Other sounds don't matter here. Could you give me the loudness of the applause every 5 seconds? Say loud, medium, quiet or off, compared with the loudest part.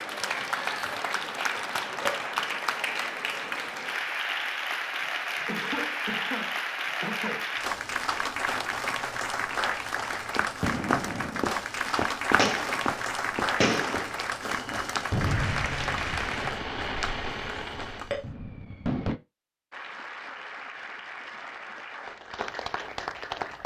loud, loud, loud, loud, medium.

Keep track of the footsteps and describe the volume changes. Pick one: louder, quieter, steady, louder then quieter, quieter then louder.
quieter.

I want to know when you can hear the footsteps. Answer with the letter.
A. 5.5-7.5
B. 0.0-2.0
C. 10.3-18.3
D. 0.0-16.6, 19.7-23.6
C.